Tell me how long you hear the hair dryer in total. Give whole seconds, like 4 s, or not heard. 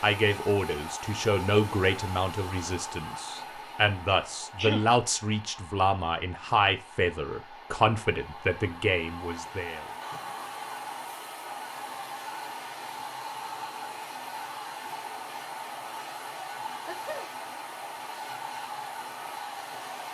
20 s.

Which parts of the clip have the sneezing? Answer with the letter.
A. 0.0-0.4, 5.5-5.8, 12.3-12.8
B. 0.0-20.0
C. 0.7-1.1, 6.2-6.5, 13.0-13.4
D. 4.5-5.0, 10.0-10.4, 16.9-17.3
D.